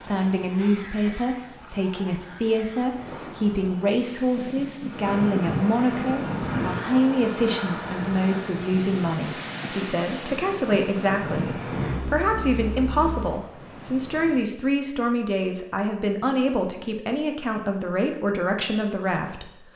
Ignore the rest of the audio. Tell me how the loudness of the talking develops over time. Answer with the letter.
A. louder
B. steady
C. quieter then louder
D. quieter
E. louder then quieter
B.